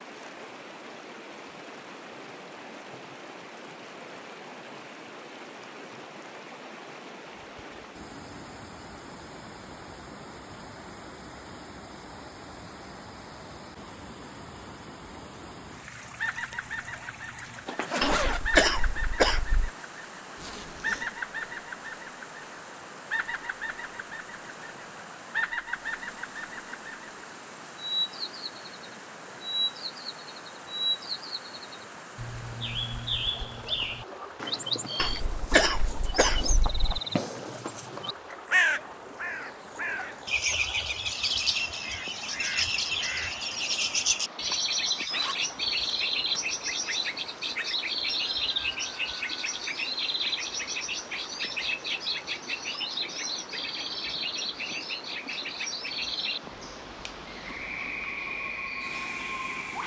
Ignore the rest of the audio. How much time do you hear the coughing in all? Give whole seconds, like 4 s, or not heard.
4 s.